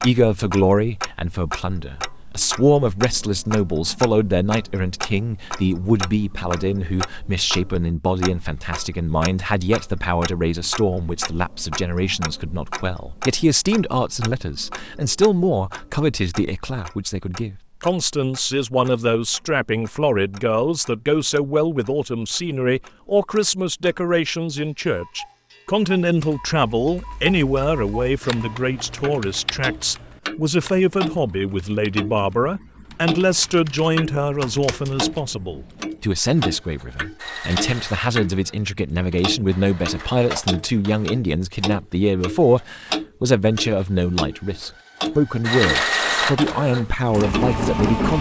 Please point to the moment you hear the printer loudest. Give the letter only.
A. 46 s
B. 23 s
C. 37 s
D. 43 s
A.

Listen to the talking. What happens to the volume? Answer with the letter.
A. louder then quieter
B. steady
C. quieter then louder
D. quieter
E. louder
B.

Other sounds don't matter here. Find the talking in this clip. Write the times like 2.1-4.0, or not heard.
0.0-48.1.